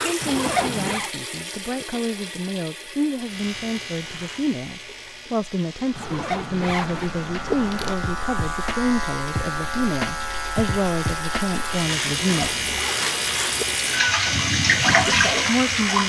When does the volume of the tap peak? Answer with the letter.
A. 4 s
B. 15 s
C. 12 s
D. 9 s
B.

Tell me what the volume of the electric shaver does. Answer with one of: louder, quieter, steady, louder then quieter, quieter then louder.
louder.